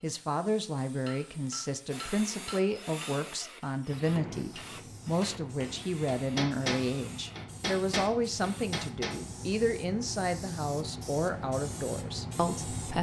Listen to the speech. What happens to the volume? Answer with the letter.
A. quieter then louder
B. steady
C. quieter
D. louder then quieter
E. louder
B.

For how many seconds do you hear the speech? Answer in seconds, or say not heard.
13 s.